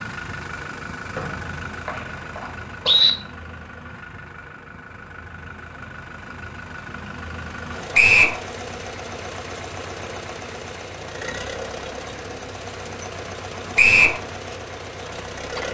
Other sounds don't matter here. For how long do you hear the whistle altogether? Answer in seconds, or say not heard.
3 s.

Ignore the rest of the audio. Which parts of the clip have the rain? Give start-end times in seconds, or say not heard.
not heard.